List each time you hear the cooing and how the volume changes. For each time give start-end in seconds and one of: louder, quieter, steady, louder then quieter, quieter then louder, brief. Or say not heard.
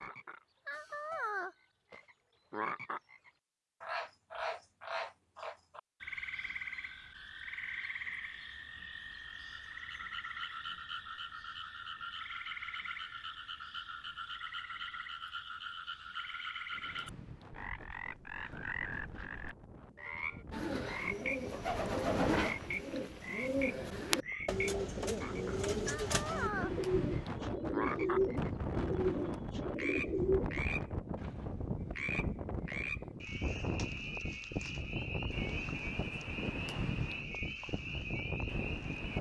20.5-30.6 steady.